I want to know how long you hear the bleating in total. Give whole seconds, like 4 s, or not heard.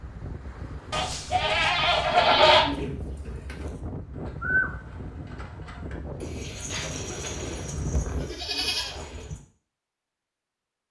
3 s.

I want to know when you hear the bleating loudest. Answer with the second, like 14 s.
2 s.